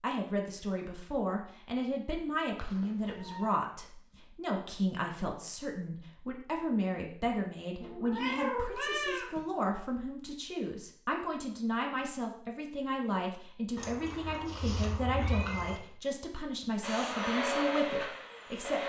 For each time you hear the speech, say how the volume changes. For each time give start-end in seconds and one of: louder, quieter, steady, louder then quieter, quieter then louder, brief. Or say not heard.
0.0-18.8 steady.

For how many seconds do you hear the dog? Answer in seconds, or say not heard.
not heard.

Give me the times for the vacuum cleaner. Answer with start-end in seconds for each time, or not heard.
16.8-18.8.